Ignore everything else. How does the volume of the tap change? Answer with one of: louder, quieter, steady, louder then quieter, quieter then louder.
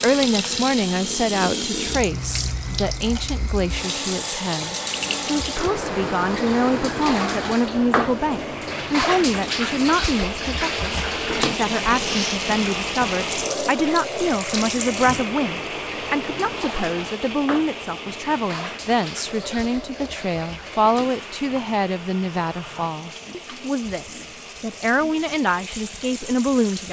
quieter.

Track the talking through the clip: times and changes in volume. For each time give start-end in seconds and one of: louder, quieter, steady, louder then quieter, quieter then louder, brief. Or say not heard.
0.0-26.8 steady.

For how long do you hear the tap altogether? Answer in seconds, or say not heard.
27 s.